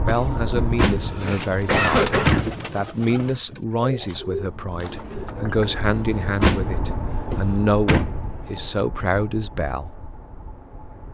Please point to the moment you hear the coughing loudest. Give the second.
2 s.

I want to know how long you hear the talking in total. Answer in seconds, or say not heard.
10 s.